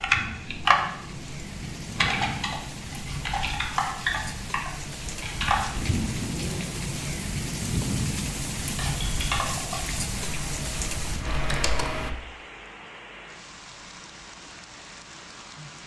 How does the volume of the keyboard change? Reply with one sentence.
The volume of the keyboard goes down.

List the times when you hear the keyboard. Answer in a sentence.
You can hear the keyboard from 0.0 to 5.9 s and from 8.7 to 12.1 s.